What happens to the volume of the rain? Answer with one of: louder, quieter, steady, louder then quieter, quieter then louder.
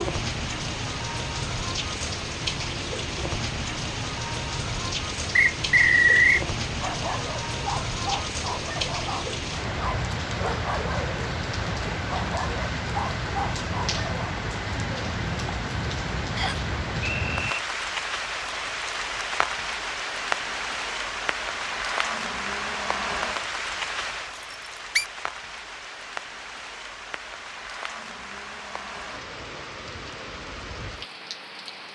quieter.